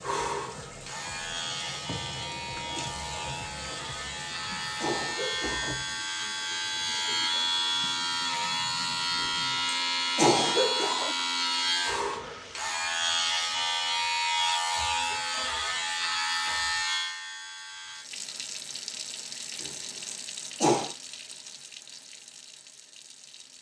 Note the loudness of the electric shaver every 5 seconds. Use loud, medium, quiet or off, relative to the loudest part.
medium, loud, loud, loud, off.